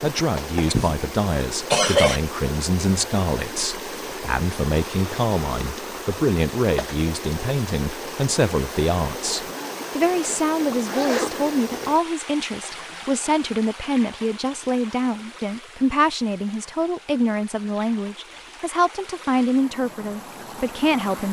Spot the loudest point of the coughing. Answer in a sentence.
The loudest moment of the coughing is at 2 seconds.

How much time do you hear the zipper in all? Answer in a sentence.
The zipper can be heard for 2 seconds in total.